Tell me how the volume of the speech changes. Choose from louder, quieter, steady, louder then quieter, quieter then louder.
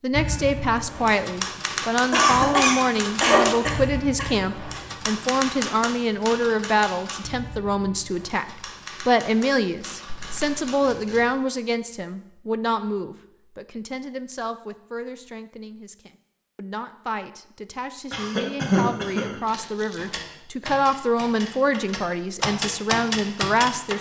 quieter then louder.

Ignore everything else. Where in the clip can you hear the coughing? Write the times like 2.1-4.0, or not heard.
2.1-4.8, 18.1-19.4.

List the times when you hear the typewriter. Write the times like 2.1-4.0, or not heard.
0.1-11.2, 19.9-23.9.